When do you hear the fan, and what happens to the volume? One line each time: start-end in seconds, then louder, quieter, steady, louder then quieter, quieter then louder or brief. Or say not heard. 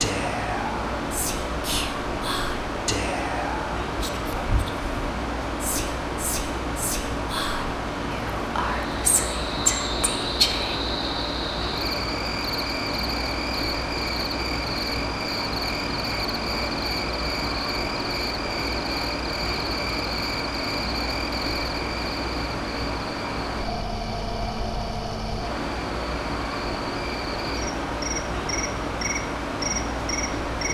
0.0-30.7 steady.